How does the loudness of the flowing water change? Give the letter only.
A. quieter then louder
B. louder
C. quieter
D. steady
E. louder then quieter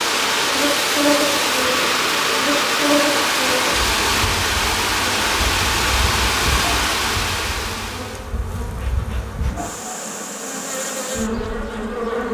D.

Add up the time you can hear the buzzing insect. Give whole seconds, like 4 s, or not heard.
12 s.